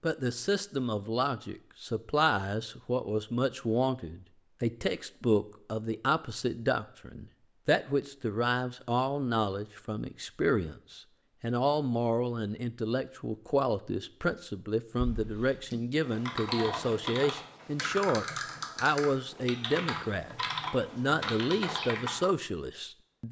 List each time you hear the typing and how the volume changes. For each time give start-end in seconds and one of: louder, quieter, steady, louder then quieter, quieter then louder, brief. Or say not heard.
14.9-22.3 steady.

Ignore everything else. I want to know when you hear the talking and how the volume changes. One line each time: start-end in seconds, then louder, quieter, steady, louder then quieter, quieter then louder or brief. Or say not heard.
0.0-23.2 steady.